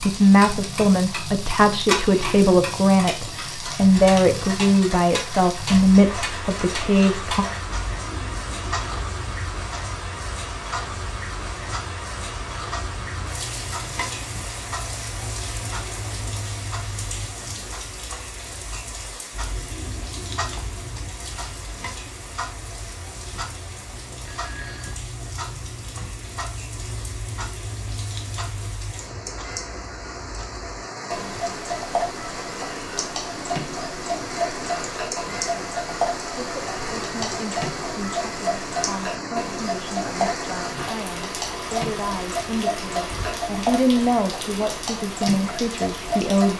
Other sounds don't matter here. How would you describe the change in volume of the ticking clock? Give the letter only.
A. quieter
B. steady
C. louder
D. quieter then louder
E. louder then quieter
D.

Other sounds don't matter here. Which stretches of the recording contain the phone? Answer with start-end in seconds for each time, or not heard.
24.1-25.0.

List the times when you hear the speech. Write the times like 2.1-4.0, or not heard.
0.0-7.5, 36.4-46.5.